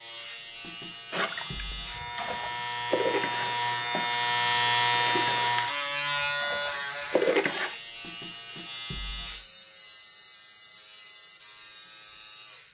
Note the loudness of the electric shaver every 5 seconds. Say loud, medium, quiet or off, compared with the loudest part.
loud, loud, quiet.